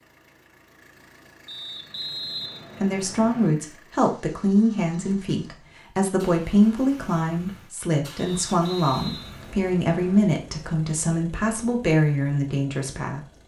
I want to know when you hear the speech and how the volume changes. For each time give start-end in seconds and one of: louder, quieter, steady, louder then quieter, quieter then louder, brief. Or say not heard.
2.8-13.2 steady.